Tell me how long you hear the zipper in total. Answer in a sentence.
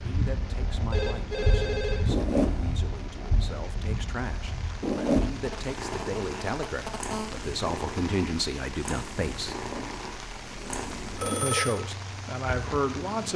You can hear the zipper for 3 seconds altogether.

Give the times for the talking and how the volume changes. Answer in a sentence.
You can hear the talking from 0.1 to 9.6 s, getting louder; and briefly from 11.4 to 13.3 s.